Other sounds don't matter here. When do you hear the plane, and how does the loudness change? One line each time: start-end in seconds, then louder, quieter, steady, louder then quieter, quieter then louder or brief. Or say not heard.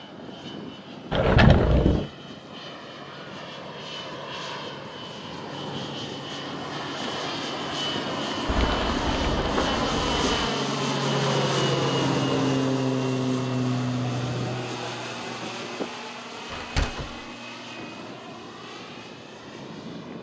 0.0-20.1 louder then quieter.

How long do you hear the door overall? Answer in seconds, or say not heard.
2 s.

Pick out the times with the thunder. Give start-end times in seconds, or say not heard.
8.4-10.5.